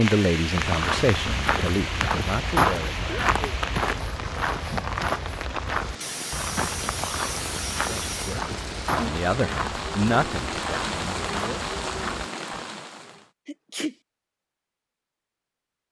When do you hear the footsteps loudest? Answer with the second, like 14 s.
3 s.